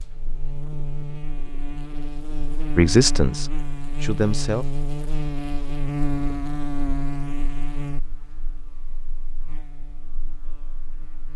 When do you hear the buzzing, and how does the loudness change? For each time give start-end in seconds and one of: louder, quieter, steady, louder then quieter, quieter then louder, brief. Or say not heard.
0.0-11.3 louder then quieter.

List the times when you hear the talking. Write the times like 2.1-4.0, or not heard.
2.8-4.7.